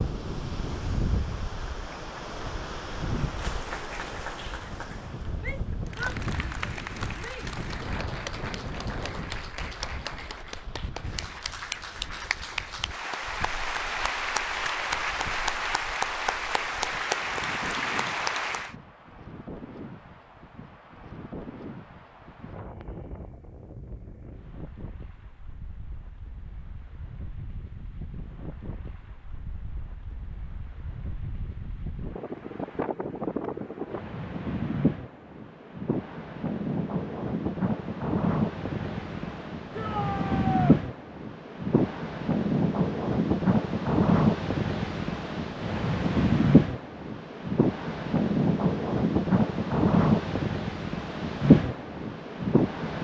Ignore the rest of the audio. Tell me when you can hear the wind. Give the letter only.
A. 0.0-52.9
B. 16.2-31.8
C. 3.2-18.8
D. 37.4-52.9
A.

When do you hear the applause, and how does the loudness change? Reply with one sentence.
You can hear the applause from 3.2 to 18.8 s, getting louder.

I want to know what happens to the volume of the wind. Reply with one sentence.
The loudness of the wind goes down, then up.